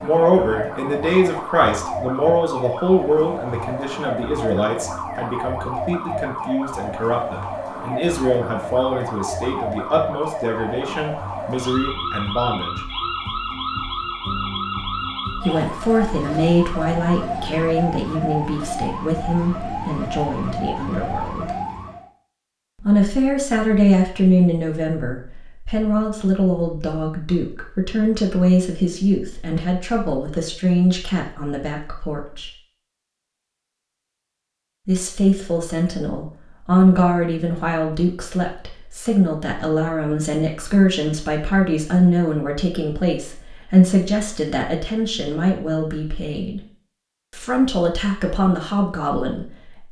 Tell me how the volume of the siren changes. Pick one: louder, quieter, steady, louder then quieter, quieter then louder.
steady.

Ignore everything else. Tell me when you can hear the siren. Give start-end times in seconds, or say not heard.
0.0-22.1.